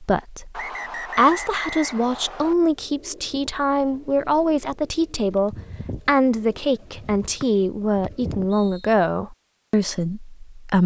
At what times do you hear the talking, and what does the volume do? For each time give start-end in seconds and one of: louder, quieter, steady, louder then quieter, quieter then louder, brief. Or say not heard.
0.0-10.8 steady.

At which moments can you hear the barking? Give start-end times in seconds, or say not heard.
not heard.